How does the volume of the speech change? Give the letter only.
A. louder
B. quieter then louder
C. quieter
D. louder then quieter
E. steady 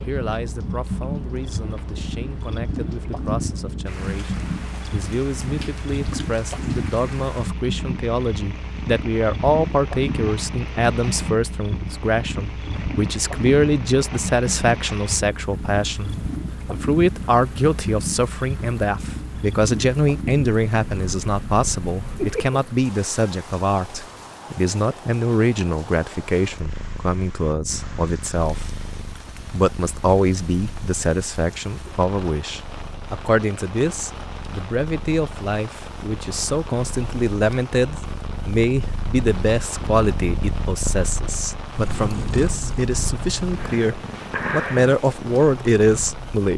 A.